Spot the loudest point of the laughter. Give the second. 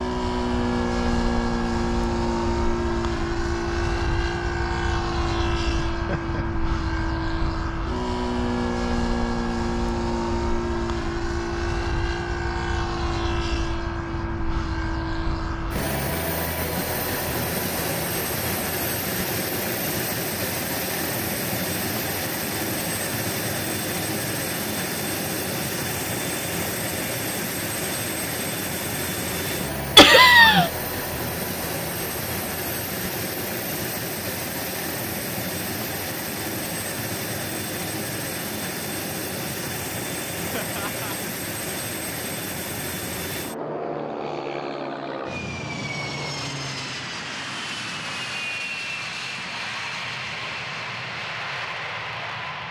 30 s.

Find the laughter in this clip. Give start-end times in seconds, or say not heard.
5.9-6.5, 29.9-30.7, 40.5-41.1.